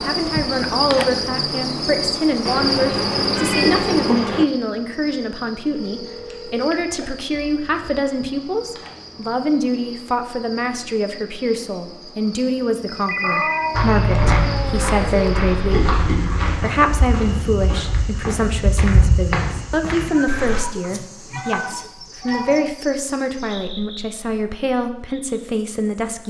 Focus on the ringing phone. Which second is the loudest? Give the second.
13 s.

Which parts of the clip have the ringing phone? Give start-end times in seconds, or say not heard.
5.8-7.0, 12.9-13.7, 21.4-22.8.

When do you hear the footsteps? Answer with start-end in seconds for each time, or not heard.
13.7-20.6.